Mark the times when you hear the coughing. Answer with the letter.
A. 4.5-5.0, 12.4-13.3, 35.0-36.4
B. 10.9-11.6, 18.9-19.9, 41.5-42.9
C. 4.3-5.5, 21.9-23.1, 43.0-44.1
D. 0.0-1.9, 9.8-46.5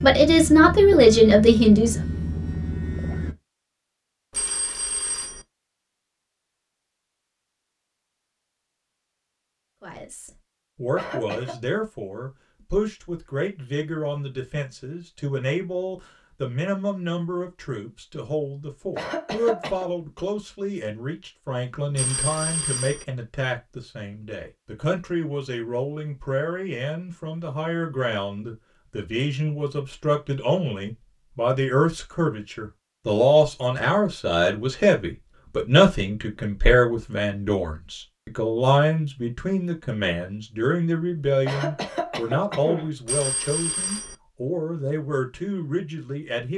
B.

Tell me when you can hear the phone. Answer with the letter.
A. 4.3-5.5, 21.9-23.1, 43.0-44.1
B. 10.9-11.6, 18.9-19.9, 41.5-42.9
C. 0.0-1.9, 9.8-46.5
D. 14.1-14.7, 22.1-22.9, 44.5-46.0
A.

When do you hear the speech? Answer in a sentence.
The speech can be heard from 0.0 to 1.9 s and from 9.8 to 46.5 s.